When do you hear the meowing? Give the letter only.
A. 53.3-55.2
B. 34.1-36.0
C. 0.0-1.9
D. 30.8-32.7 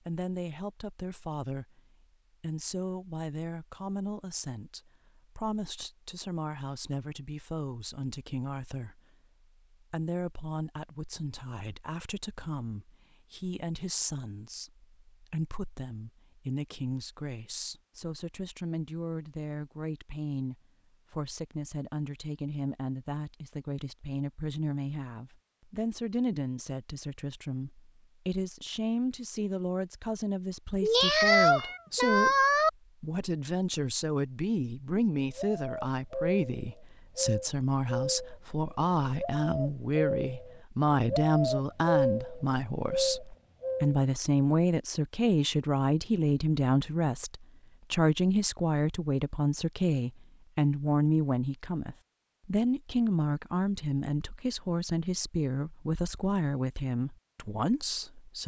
D.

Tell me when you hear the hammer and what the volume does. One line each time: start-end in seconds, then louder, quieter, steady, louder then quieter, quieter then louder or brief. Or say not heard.
not heard.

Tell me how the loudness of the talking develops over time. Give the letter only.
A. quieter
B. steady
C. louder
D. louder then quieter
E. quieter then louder
C.